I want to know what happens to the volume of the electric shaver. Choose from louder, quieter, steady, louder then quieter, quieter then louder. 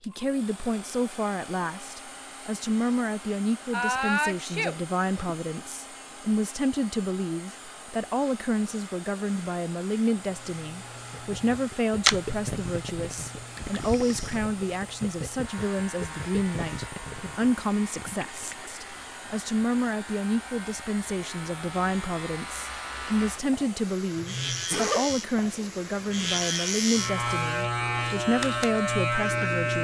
quieter then louder.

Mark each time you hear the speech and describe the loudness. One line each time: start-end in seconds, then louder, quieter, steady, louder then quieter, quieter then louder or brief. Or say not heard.
0.1-29.7 steady.